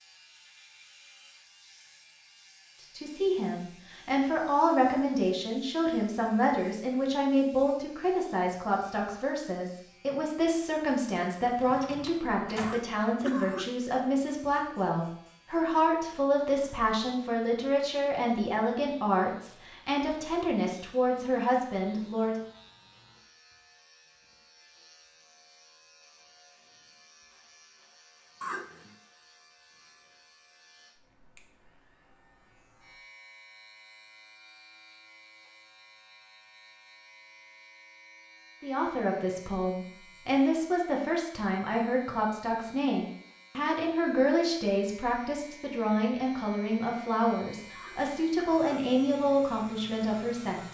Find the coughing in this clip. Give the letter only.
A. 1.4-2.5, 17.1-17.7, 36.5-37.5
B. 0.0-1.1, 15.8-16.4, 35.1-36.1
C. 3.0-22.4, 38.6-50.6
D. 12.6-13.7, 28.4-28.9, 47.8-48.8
D.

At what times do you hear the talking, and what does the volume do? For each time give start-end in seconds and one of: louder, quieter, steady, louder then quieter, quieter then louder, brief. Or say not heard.
3.0-22.4 steady
38.6-50.6 steady.